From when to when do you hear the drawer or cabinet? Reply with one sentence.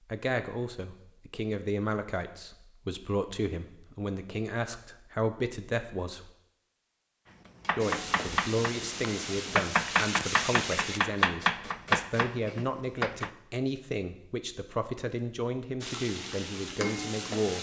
You can't hear the drawer or cabinet here.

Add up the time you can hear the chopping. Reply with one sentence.
The chopping can be heard for 6 seconds in total.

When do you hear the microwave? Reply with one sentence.
You can't hear the microwave here.